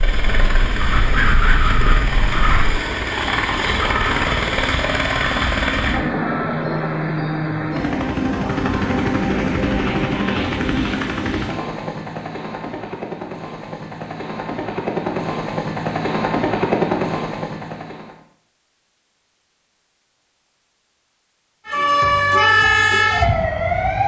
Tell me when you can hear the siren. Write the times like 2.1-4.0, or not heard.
0.0-2.9, 21.6-24.0.